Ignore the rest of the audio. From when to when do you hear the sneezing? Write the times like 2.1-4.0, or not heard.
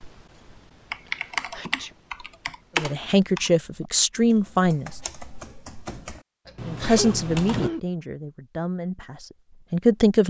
0.9-1.9, 6.5-7.8.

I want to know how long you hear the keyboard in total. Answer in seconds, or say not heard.
8 s.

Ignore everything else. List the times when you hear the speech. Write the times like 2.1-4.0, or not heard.
2.8-5.0, 6.7-10.2.